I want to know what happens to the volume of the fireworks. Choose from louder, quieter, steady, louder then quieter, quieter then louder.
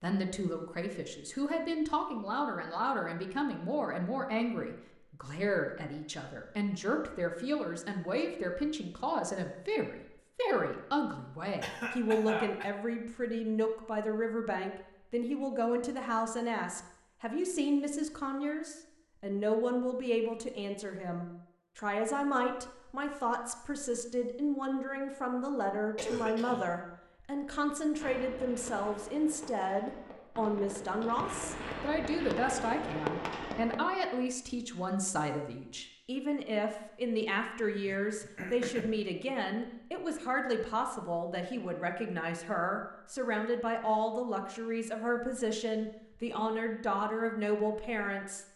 louder.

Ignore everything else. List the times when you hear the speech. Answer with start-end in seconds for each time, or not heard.
0.0-48.5.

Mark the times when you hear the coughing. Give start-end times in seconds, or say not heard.
11.6-12.7, 25.9-26.6, 37.9-39.0.